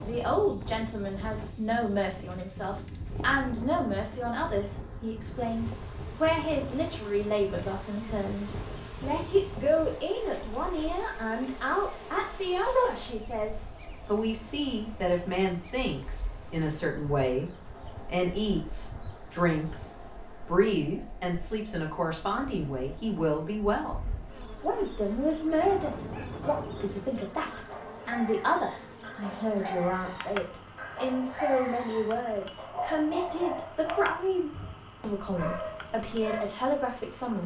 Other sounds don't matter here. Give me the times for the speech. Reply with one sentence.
You can hear the speech from 0.0 to 37.4 s.